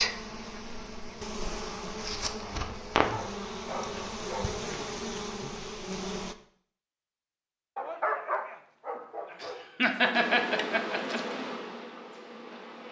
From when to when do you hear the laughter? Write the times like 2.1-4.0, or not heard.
9.4-11.3.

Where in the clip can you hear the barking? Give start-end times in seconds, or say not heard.
3.1-4.7, 7.8-10.2.